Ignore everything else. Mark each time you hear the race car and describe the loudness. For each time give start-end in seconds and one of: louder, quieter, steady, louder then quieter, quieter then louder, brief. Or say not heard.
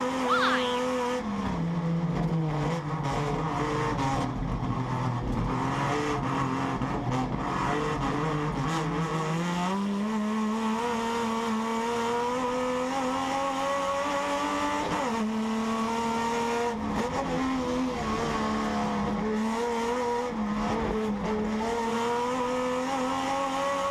0.0-23.8 steady.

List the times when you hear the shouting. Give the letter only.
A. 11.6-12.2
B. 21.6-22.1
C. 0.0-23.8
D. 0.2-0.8
D.